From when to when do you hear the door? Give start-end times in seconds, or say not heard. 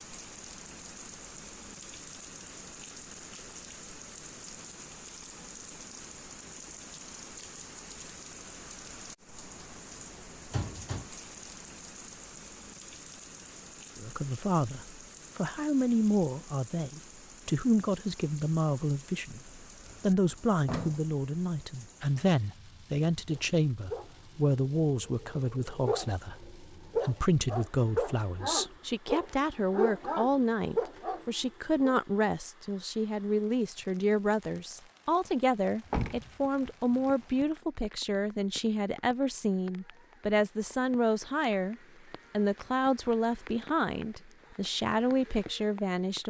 10.5-11.1, 19.5-21.0, 35.9-37.5.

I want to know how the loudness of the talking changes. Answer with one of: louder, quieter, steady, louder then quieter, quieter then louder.
steady.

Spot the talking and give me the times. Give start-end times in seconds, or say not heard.
13.9-46.2.